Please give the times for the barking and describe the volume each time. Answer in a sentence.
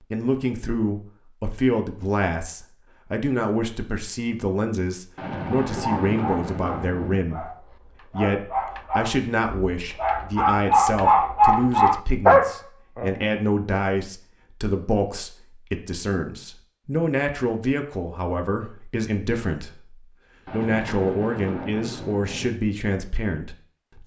You can hear the barking from 5.7 to 13.3 s, getting louder.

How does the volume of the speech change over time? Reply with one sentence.
The volume of the speech stays about the same.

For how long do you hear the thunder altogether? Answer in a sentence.
The thunder can be heard for 4 seconds in total.